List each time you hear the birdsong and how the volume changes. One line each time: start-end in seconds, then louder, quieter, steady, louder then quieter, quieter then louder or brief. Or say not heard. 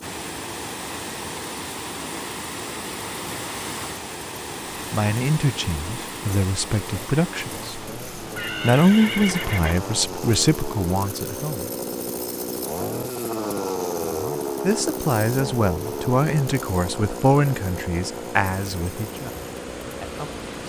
not heard.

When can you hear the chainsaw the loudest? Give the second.
14 s.